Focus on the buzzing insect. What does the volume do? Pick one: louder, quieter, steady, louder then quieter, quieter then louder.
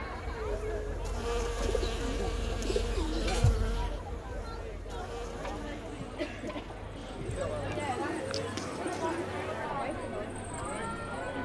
quieter.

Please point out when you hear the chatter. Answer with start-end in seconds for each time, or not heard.
0.0-11.3.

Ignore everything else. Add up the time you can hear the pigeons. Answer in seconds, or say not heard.
4 s.